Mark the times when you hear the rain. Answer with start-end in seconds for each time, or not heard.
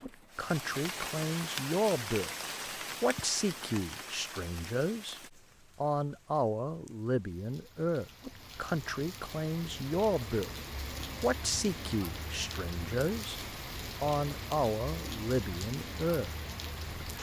0.0-17.1.